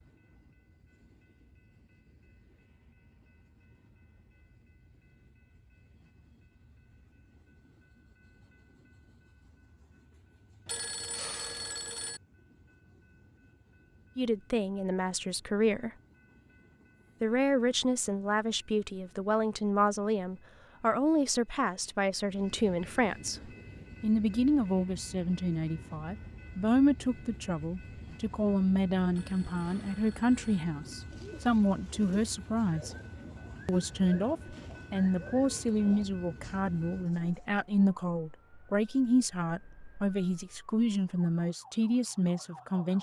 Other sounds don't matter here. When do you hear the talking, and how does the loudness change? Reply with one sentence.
You can hear the talking briefly from 14.2 to 15.9 s; from 17.2 to 32.9 s, at a steady volume; and from 33.6 to 42.9 s, at a steady volume.